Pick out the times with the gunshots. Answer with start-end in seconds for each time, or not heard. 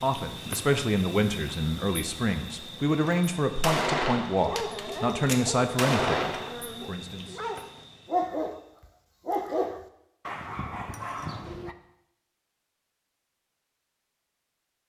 3.0-6.5.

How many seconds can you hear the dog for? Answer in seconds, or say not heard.
7 s.